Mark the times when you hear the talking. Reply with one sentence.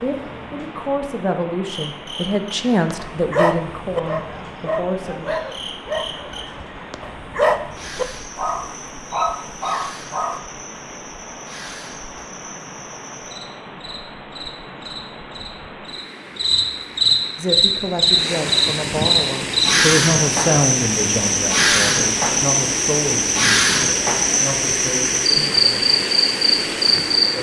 You can hear the talking from 0.0 to 5.2 s and from 17.4 to 25.8 s.